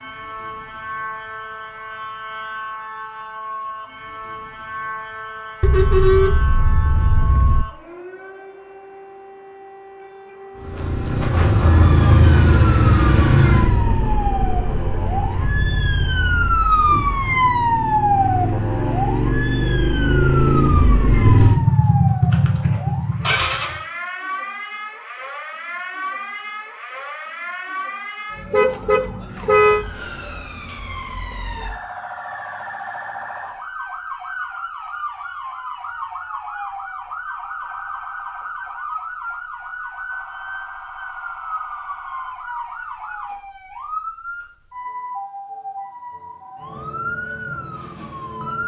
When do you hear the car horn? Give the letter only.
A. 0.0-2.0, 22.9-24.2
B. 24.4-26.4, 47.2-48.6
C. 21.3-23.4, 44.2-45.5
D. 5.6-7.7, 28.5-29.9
D.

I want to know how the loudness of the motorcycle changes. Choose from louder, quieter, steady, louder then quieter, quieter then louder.
quieter then louder.